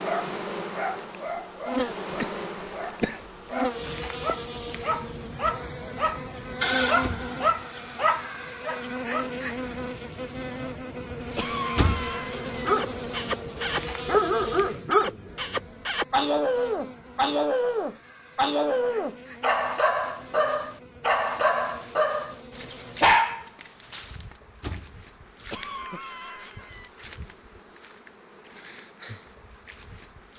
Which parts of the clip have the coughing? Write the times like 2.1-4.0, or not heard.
1.8-3.5, 11.3-12.8, 25.5-26.9.